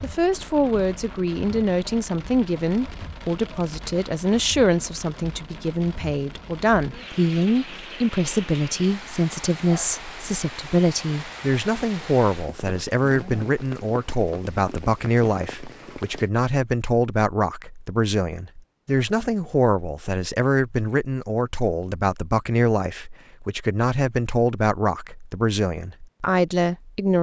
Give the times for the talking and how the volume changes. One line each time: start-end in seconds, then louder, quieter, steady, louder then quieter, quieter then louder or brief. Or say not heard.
0.0-27.1 steady.